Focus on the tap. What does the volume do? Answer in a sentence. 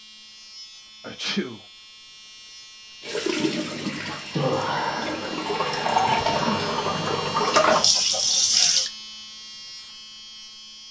The volume of the tap goes up.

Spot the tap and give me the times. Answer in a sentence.
You can hear the tap from 3.0 to 8.9 s.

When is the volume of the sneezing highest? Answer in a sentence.
The volume of the sneezing peaks at 1 second.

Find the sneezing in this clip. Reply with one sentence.
The sneezing can be heard from 1.0 to 1.6 s and from 6.0 to 6.5 s.